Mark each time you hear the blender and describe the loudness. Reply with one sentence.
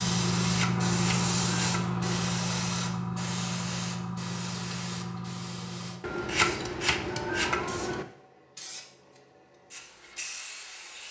You can't hear the blender here.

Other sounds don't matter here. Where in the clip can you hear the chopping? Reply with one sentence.
You can hear the chopping from 0.2 to 2.2 s and from 6.0 to 8.1 s.